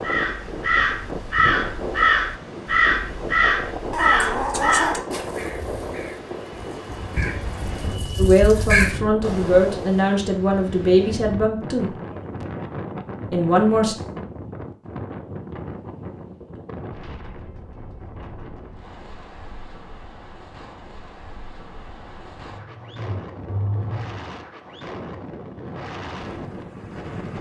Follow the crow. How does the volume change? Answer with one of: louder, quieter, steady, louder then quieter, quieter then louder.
quieter then louder.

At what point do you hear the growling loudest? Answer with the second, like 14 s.
5 s.